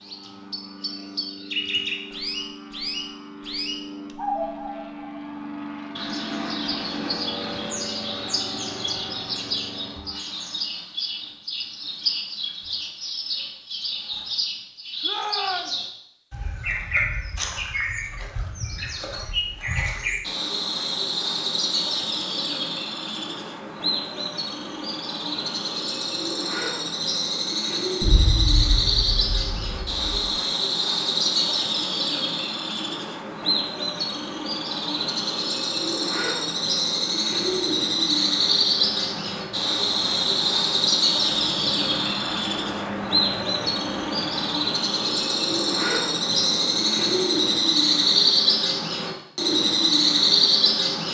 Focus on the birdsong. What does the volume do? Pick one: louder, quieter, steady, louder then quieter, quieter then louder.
louder.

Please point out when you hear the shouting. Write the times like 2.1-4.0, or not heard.
15.0-15.8.